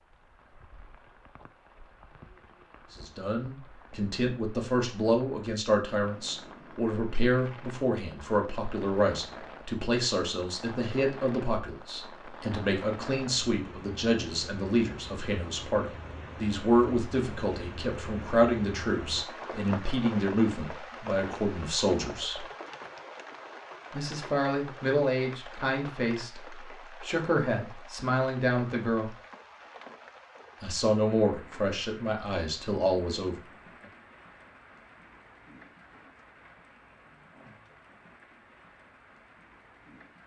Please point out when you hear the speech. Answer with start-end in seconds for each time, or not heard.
2.9-22.4, 23.9-29.1, 30.6-33.4.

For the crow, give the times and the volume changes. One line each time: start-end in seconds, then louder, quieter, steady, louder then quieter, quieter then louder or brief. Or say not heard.
not heard.